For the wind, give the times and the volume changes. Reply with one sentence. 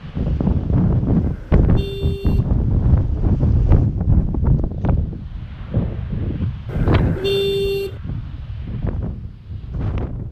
The wind can be heard from 0.0 to 10.2 s, getting quieter.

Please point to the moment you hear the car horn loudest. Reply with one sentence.
The loudest moment of the car horn is at 7 seconds.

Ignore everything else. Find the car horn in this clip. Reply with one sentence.
The car horn can be heard from 1.2 to 2.5 s and from 6.7 to 8.0 s.